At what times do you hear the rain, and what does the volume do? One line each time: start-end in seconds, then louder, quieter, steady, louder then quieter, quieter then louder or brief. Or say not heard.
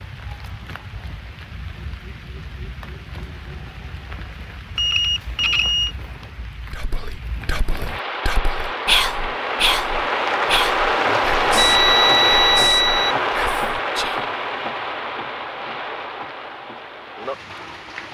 0.0-18.0 louder then quieter.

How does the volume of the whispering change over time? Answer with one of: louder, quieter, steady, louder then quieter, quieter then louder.
louder then quieter.